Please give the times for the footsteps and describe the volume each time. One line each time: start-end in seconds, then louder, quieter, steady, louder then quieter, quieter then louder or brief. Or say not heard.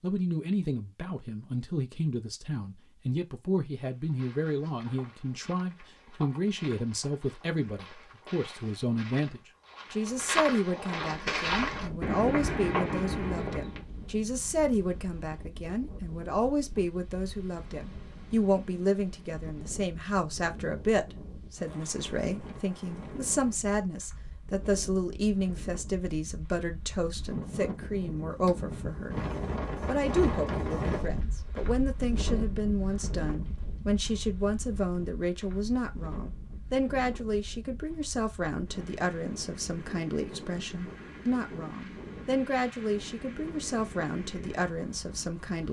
3.9-13.8 louder.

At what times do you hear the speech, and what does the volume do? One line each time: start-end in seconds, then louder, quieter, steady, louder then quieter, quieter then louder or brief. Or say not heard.
0.0-45.6 steady.